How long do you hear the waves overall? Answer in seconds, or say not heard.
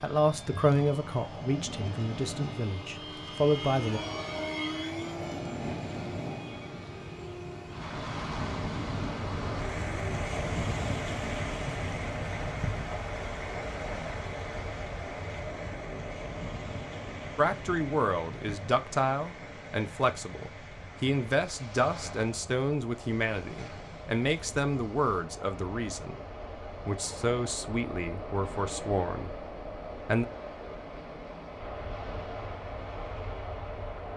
34 s.